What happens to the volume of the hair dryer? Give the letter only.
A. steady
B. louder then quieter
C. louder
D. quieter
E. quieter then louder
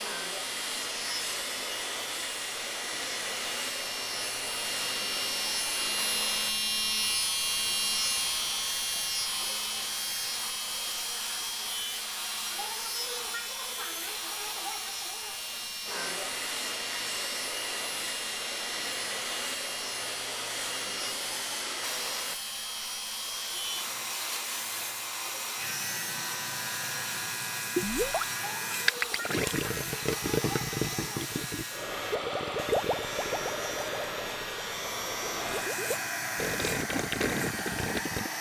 A.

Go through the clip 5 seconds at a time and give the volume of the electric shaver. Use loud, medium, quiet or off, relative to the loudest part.
medium, loud, medium, medium, medium, medium, medium, medium.